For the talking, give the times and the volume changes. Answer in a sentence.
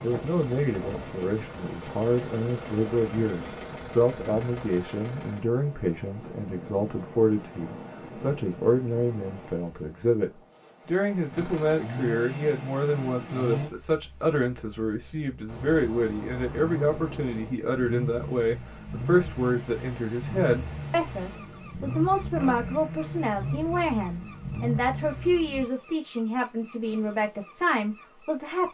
The talking can be heard from 0.0 to 28.6 s, at a steady volume.